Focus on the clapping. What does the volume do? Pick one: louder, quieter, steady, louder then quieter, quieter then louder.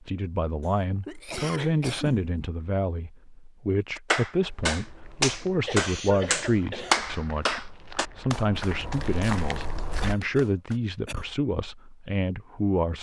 quieter.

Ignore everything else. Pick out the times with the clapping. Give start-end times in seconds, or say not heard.
4.0-10.8.